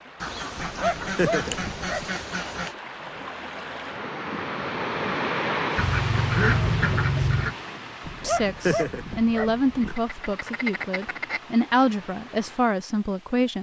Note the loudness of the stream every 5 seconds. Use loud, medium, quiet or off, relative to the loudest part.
loud, loud, quiet.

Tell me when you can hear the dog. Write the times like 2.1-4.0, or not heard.
0.6-2.1, 8.1-9.9.